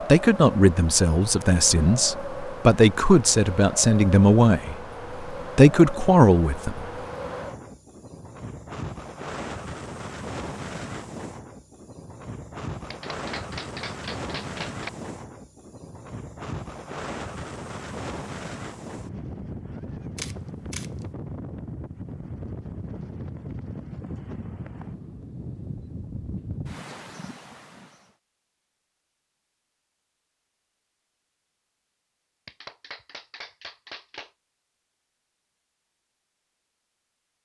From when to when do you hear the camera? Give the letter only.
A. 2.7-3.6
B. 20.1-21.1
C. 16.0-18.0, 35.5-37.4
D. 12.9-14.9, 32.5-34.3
B.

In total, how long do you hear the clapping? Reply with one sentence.
The clapping can be heard for 4 seconds in total.